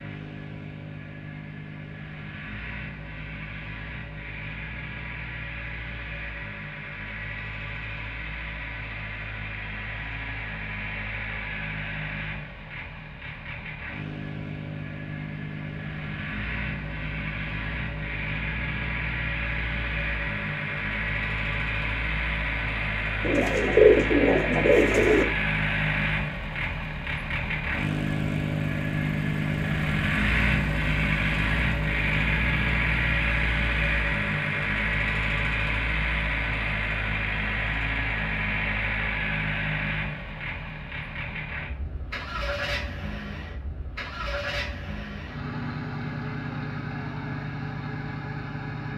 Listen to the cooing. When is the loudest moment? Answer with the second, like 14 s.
24 s.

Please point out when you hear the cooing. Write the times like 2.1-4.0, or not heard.
23.2-25.2.